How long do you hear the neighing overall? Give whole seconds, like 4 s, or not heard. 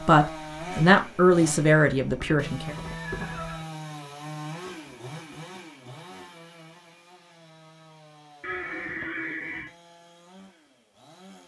3 s.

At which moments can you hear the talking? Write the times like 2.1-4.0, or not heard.
0.0-2.8.